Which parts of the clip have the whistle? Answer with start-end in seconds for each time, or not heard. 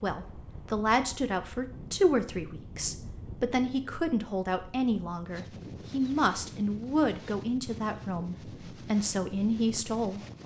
not heard.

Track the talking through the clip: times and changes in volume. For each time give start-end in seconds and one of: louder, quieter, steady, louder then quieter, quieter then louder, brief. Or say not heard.
0.0-10.2 steady.